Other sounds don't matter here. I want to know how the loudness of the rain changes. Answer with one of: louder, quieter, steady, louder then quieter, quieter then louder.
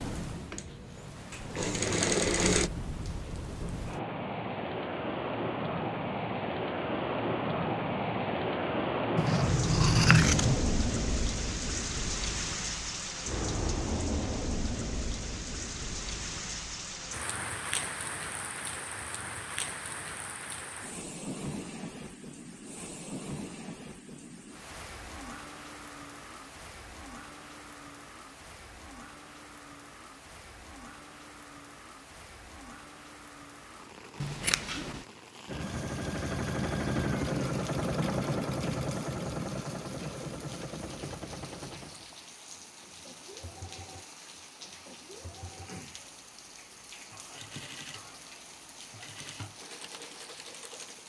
quieter.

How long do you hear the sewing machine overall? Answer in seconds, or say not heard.
18 s.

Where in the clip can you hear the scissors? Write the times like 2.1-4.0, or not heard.
9.2-10.7, 34.2-35.0.